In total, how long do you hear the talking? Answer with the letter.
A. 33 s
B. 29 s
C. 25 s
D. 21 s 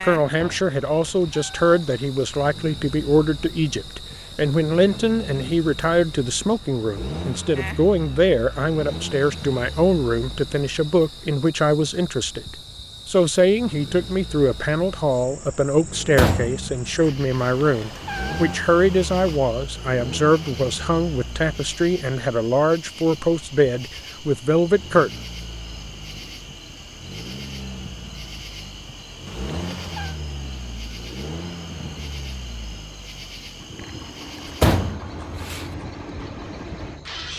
C.